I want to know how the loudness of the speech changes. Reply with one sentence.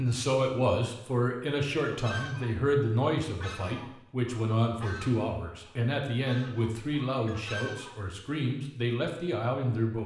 The volume of the speech stays about the same.